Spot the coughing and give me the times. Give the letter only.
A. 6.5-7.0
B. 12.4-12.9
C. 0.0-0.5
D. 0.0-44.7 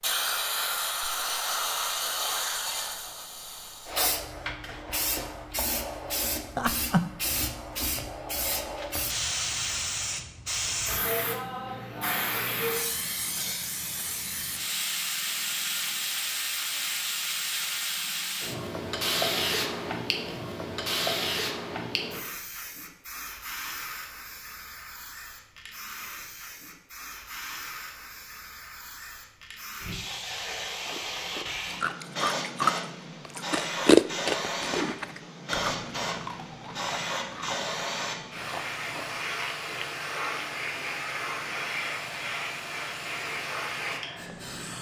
A.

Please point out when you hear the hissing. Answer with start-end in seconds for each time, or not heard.
0.0-44.7.